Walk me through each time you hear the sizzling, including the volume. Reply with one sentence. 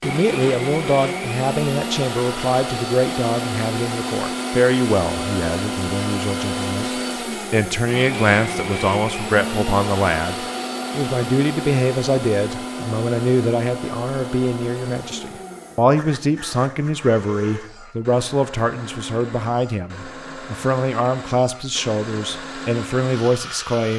You can't hear the sizzling here.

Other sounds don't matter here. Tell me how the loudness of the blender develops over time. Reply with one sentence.
The loudness of the blender goes down.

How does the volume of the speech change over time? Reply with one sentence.
The volume of the speech stays about the same.